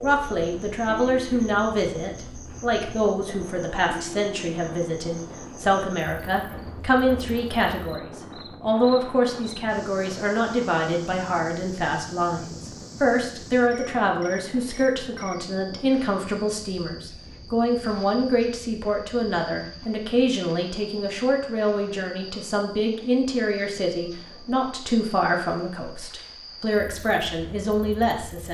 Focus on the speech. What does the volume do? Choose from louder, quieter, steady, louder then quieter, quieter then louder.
steady.